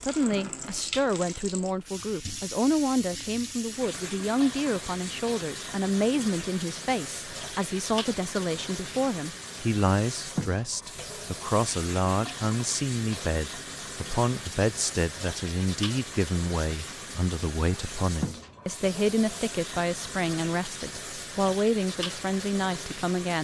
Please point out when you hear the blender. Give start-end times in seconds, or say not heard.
not heard.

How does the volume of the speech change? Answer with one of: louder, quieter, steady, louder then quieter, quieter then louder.
steady.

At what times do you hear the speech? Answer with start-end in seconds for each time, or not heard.
0.0-23.3.